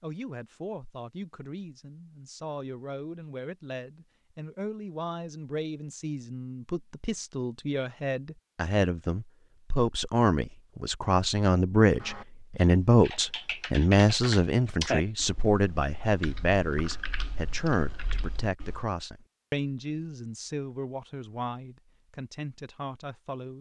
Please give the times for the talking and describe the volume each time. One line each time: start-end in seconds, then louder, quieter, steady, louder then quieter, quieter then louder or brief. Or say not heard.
0.0-23.5 louder then quieter.